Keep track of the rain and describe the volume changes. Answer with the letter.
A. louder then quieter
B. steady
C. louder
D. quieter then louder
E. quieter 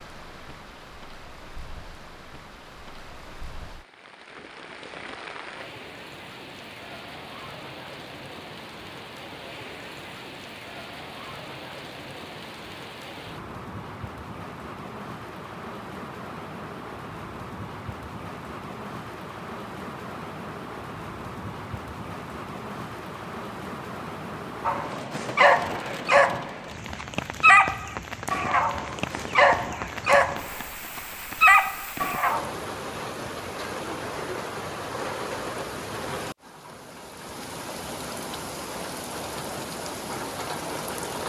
C.